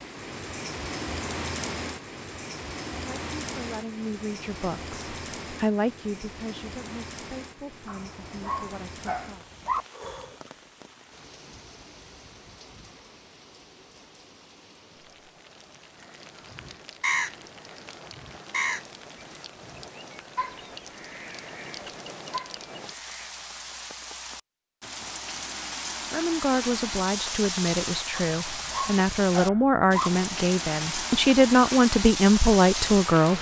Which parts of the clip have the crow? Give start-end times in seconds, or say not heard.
16.5-17.4, 18.1-18.9, 19.6-23.3.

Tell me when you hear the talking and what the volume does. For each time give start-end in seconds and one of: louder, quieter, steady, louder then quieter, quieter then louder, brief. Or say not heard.
3.0-9.4 louder then quieter
26.1-33.3 louder.